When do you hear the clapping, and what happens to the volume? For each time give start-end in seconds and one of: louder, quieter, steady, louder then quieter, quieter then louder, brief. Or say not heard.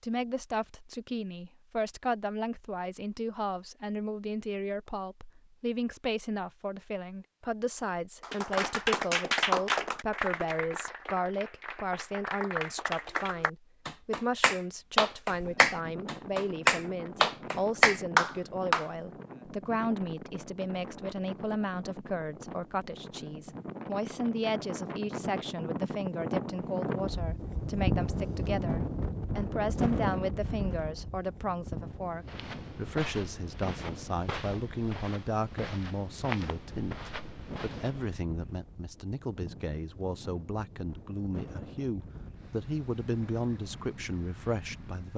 8.2-18.9 quieter then louder.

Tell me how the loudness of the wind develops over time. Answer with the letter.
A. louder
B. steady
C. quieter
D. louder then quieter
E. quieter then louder
D.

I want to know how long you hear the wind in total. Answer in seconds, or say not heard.
30 s.